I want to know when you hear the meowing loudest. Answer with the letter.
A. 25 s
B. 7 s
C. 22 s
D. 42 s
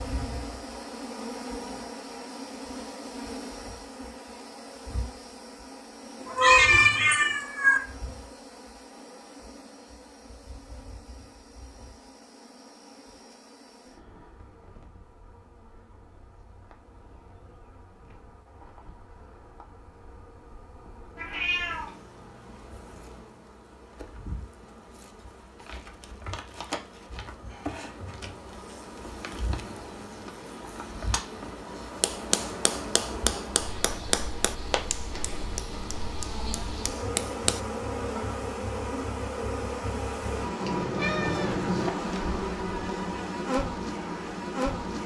B.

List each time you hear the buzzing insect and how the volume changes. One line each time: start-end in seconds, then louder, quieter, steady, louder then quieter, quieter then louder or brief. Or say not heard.
0.0-45.0 quieter then louder.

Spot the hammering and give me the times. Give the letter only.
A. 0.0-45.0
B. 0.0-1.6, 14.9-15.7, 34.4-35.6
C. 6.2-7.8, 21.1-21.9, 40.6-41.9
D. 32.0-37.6
D.